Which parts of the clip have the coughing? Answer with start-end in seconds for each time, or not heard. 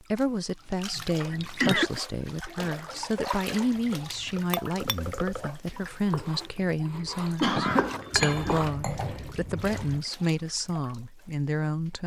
1.3-2.0, 7.4-8.7.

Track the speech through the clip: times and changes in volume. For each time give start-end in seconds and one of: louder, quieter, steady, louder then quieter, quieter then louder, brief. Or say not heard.
0.0-12.0 steady.